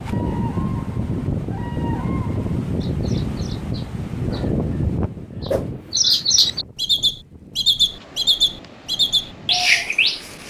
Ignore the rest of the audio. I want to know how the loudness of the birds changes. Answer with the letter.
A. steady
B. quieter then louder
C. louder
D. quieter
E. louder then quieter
B.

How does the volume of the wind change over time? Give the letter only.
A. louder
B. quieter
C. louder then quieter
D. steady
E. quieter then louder
B.